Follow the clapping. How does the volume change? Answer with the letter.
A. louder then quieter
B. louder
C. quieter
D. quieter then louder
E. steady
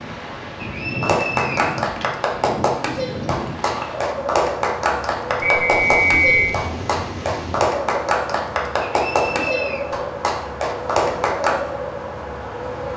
E.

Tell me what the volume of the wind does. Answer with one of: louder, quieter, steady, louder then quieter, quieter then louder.
steady.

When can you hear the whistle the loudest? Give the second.
6 s.